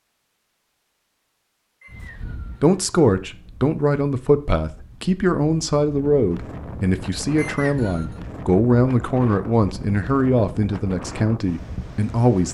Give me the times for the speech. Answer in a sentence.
The speech can be heard from 2.6 to 12.4 s.